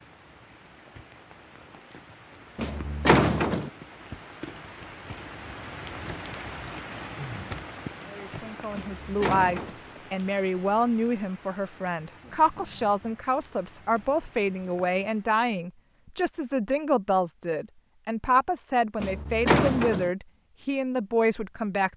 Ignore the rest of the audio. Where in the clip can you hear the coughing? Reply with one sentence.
You can't hear the coughing here.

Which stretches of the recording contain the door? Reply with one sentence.
You can hear the door from 2.5 to 3.7 s, from 8.7 to 9.8 s and from 18.9 to 20.1 s.